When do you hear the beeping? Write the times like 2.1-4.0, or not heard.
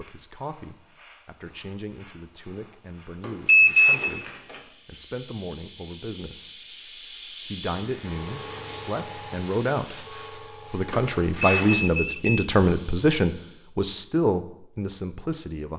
3.5-4.2, 11.4-12.5.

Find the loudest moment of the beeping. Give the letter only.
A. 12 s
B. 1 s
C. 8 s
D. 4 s
D.